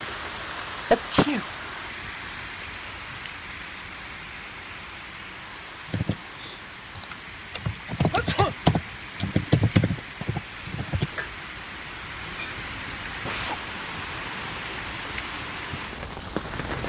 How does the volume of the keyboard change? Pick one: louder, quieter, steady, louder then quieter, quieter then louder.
louder then quieter.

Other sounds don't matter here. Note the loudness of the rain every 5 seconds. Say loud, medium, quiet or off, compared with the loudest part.
loud, medium, loud, loud.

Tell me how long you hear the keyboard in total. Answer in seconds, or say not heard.
5 s.